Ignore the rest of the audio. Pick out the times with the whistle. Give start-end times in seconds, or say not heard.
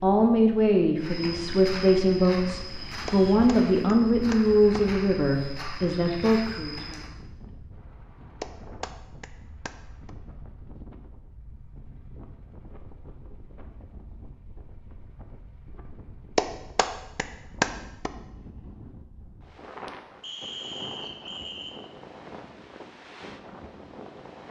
20.2-21.8.